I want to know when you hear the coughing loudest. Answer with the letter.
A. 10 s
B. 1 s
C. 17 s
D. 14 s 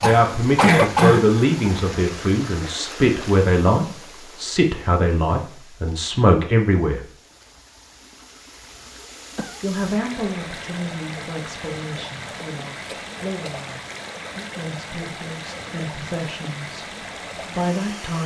B.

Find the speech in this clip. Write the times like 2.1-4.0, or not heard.
0.0-7.1, 9.6-18.2.